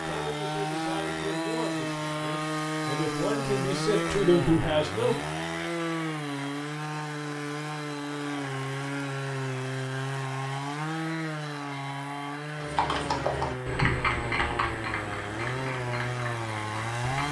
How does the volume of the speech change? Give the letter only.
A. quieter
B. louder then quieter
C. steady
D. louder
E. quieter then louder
D.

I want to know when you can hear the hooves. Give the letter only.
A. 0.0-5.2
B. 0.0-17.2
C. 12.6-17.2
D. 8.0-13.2
C.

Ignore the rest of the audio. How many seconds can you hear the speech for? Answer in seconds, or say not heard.
5 s.